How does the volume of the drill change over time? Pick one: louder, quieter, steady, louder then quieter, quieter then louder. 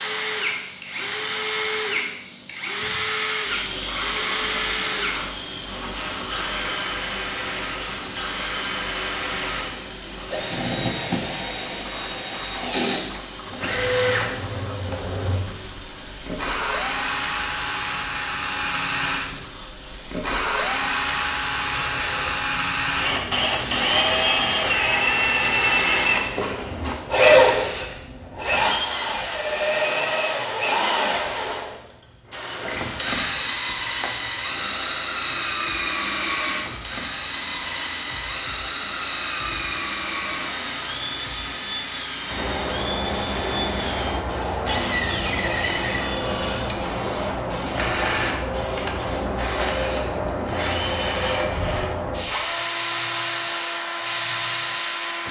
louder then quieter.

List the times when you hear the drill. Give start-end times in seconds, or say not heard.
0.0-55.2.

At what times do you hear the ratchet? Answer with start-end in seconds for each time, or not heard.
not heard.